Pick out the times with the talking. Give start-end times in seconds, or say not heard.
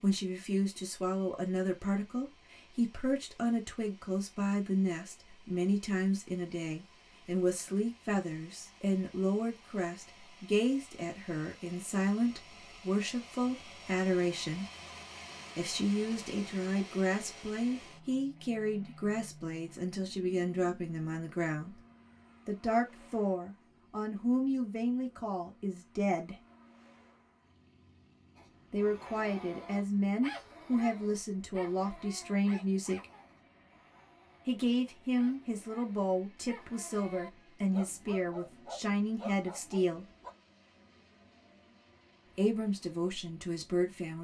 0.0-14.7, 15.6-21.8, 22.4-26.4, 28.7-33.0, 34.5-40.0, 42.4-44.2.